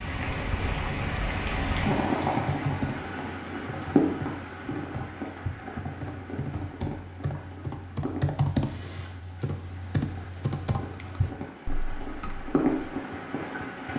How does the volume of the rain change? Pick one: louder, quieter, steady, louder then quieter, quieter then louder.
quieter then louder.